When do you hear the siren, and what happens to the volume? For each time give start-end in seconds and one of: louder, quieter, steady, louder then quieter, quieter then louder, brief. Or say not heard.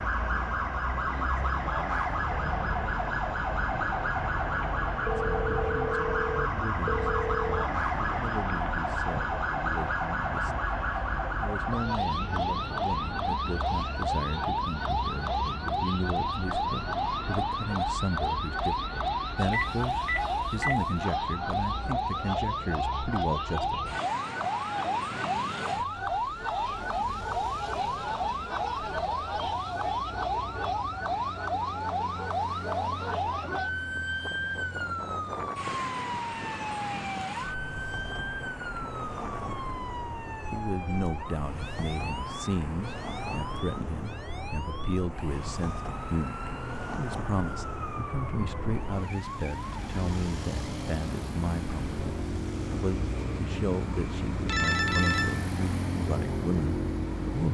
0.0-57.4 quieter.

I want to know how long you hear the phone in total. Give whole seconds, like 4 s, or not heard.
5 s.